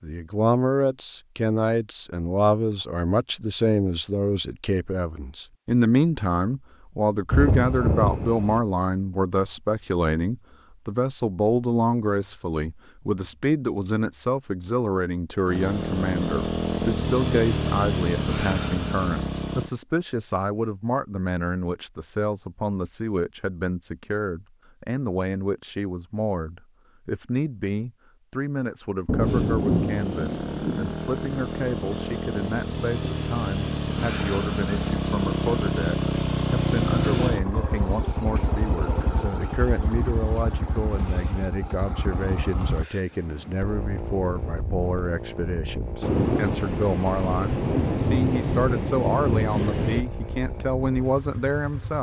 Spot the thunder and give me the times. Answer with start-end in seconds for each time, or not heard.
7.3-8.6, 29.1-30.9, 46.0-50.0.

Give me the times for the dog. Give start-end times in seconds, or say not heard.
not heard.